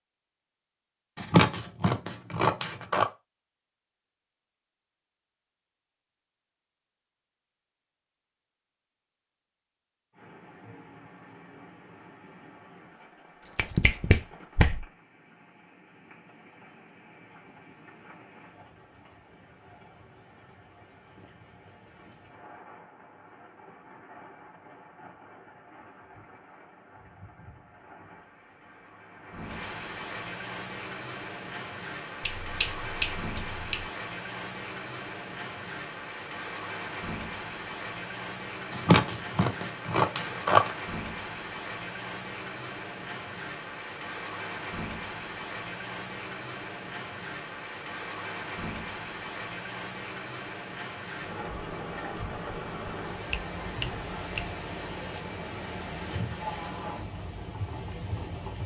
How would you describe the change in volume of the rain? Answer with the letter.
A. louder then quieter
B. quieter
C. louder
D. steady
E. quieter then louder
C.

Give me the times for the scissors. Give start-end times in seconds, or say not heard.
1.1-3.0, 38.7-40.8.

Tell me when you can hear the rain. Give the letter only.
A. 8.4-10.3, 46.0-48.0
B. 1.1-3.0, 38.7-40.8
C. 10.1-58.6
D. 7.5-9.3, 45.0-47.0
C.